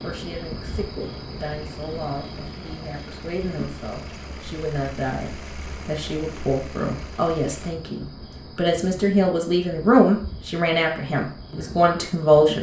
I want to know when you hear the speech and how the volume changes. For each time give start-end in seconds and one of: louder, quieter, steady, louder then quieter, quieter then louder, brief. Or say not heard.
0.0-12.5 louder.